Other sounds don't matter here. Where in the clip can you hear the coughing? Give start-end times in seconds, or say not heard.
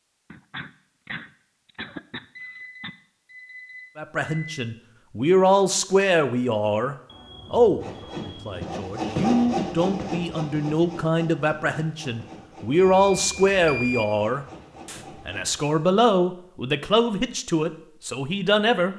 0.3-2.9.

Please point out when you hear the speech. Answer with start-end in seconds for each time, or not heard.
4.0-18.9.